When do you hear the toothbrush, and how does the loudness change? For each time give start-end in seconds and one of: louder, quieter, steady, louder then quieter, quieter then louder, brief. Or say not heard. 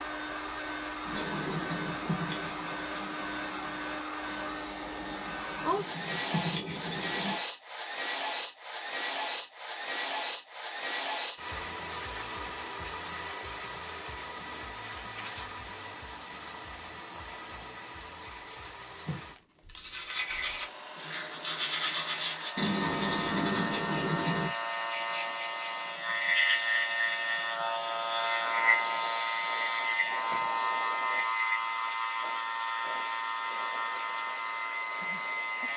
1.1-7.4 quieter then louder
18.3-24.5 louder.